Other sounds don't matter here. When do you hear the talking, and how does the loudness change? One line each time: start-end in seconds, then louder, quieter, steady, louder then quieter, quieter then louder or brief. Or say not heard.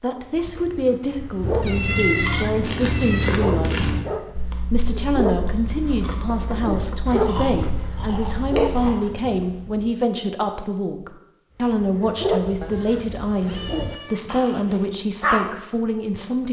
0.0-16.4 steady.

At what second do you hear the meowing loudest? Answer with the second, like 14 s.
2 s.